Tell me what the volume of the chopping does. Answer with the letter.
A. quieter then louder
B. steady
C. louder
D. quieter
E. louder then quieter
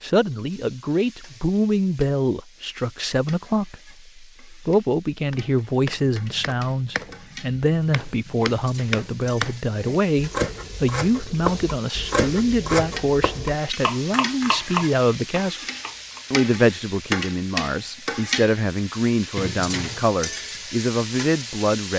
C.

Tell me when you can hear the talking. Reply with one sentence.
The talking can be heard from 0.0 to 15.6 s and from 16.3 to 21.9 s.